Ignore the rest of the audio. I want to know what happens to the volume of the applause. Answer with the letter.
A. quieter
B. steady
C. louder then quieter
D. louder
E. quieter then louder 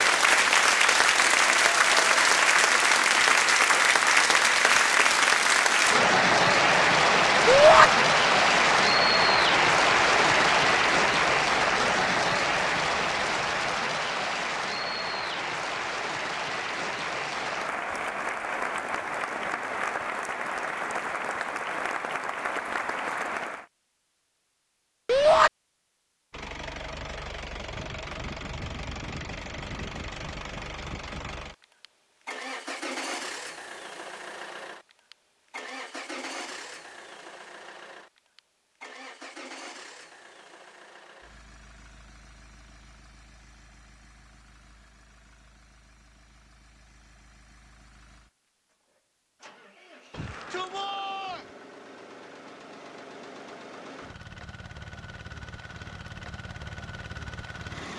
A.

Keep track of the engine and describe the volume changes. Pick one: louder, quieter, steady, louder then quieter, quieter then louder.
quieter then louder.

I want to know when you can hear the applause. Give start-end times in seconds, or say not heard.
0.0-23.6.